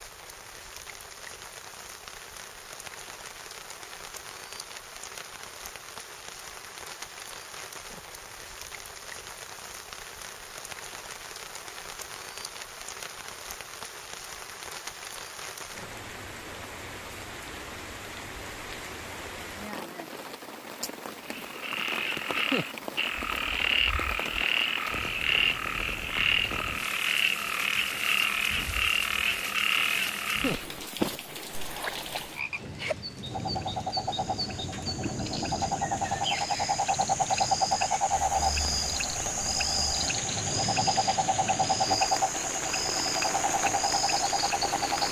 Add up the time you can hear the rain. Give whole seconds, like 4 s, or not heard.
45 s.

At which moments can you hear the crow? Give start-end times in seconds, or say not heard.
not heard.